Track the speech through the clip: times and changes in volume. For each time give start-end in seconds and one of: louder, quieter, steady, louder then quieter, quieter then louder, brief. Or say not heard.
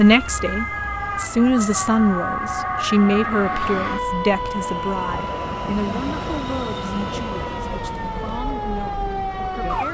0.0-9.9 quieter.